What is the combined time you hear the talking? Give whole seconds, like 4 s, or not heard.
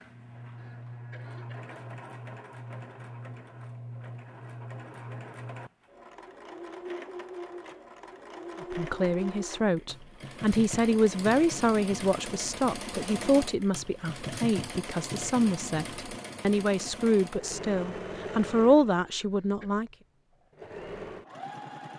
11 s.